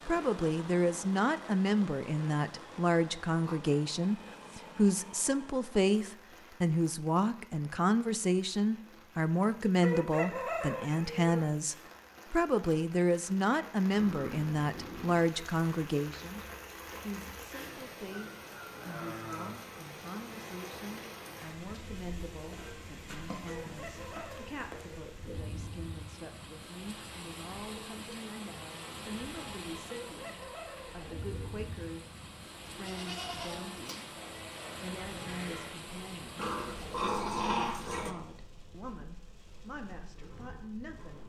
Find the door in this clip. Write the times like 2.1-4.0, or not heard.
not heard.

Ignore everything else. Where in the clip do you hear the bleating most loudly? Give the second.
33 s.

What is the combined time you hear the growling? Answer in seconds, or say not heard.
5 s.